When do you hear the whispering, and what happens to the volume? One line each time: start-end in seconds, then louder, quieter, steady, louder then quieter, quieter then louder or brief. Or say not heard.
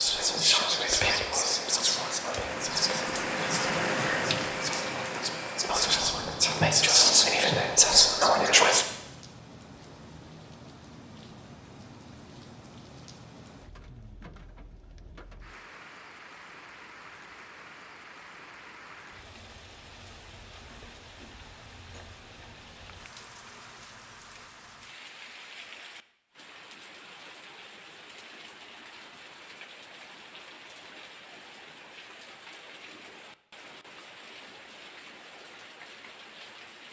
0.0-8.8 quieter then louder.